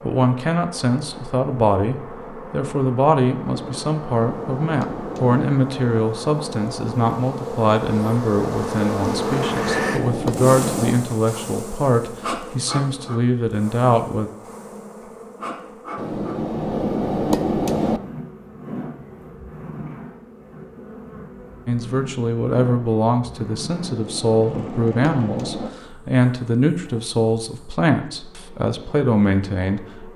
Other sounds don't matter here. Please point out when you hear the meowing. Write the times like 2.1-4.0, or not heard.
not heard.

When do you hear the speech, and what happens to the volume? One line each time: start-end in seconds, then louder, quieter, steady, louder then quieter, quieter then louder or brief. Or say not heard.
0.0-14.3 steady
21.6-30.1 steady.